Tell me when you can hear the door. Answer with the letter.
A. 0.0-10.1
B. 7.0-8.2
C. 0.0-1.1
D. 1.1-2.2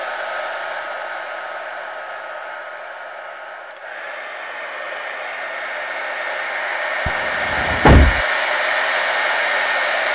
B.